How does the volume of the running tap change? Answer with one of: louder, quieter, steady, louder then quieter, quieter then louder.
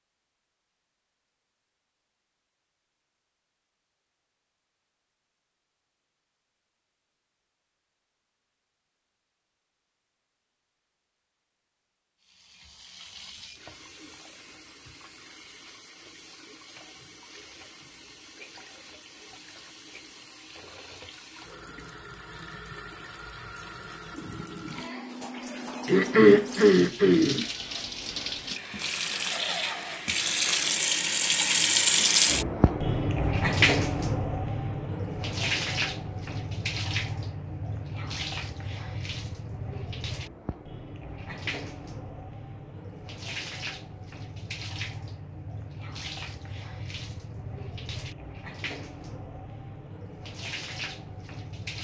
louder then quieter.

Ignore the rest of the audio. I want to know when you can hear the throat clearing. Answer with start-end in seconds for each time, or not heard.
25.9-27.4.